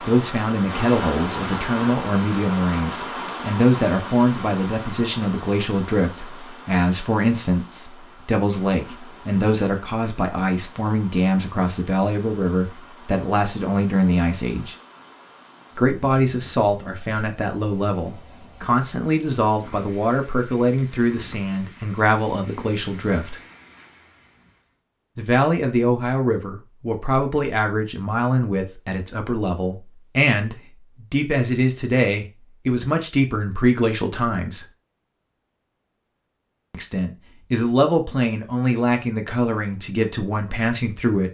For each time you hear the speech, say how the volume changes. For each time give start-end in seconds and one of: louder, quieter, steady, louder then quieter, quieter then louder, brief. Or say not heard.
0.1-14.8 steady
15.8-23.4 steady
25.1-34.6 steady
36.7-41.2 quieter.